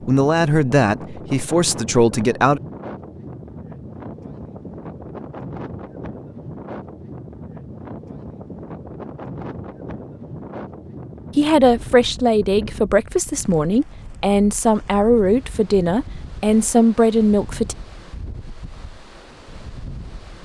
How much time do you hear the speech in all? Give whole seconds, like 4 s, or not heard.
9 s.